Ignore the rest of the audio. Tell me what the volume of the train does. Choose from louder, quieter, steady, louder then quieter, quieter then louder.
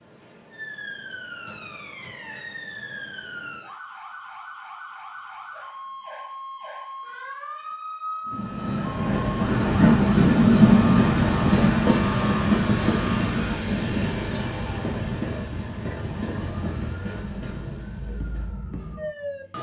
quieter.